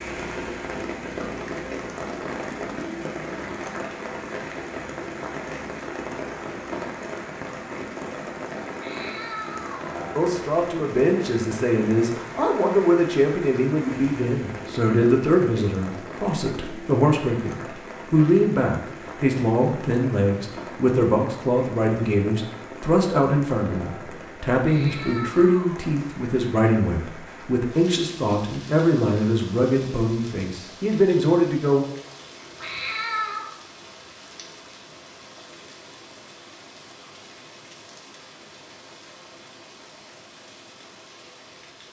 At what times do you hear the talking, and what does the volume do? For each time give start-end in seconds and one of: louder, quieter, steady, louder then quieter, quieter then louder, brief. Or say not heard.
10.2-31.9 steady.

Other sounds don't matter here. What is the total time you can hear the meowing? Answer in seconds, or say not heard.
3 s.